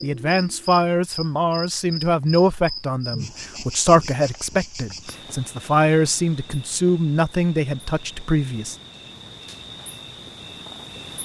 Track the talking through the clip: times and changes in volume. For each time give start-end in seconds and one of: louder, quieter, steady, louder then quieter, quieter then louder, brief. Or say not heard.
0.0-8.8 steady.